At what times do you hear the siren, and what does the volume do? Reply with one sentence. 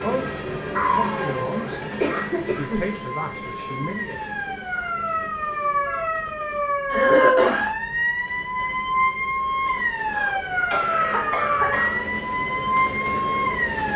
The siren can be heard from 0.0 to 13.9 s, getting louder.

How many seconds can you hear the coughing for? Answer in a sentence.
You can hear the coughing for 5 seconds altogether.